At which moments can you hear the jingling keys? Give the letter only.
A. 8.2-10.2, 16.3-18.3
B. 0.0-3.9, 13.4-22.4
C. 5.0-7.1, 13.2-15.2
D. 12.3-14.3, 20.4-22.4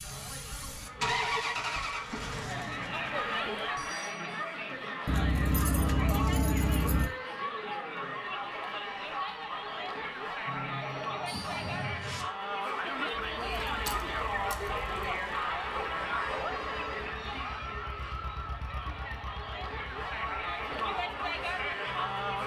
C.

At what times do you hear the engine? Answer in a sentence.
You can hear the engine from 0.0 to 3.9 s and from 13.4 to 22.4 s.